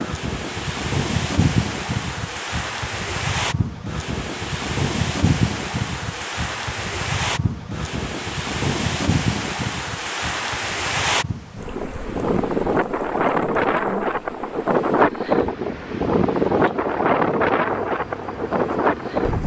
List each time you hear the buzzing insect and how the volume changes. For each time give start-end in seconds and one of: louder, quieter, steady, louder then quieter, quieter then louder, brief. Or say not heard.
0.0-19.4 quieter.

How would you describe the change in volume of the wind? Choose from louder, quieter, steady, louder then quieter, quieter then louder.
louder.